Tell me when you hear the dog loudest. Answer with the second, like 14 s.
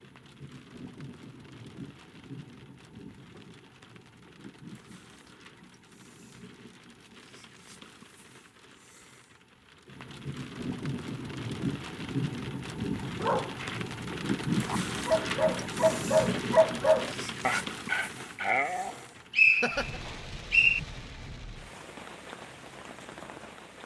17 s.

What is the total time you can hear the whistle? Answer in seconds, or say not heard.
2 s.